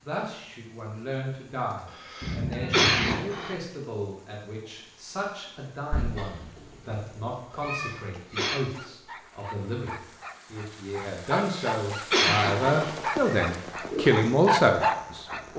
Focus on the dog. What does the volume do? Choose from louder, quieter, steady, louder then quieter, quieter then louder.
louder.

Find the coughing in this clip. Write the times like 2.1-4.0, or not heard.
2.0-3.5, 7.7-8.6, 11.4-12.9.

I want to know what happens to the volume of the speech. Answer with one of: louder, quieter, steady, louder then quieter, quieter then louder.
louder.